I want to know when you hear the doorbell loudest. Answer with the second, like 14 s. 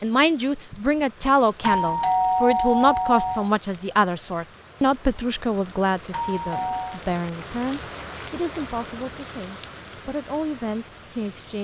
2 s.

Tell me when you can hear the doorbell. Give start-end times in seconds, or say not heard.
1.6-3.5, 6.1-7.0.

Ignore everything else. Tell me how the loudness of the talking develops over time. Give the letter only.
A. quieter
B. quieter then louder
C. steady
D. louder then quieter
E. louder
A.